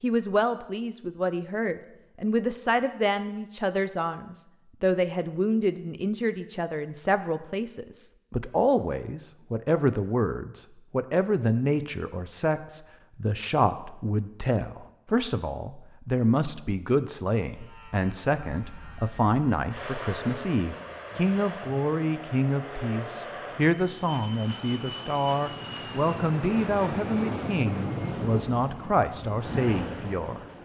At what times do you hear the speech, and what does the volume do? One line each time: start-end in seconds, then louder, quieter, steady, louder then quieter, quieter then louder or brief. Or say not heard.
0.0-30.6 steady.